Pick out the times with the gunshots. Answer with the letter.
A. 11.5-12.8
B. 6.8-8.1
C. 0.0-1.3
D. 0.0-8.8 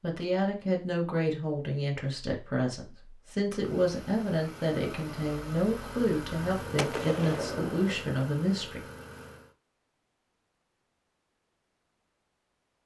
B.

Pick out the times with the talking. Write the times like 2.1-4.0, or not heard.
0.0-8.8.